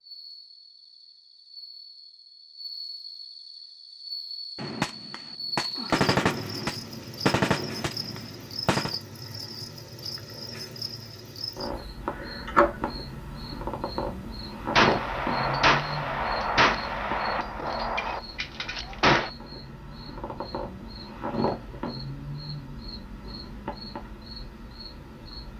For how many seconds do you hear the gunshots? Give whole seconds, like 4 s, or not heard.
9 s.